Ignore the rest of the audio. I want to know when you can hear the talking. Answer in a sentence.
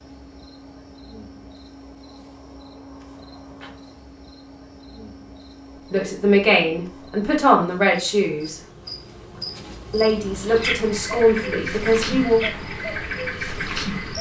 You can hear the talking from 5.9 to 8.6 s and from 9.9 to 12.4 s.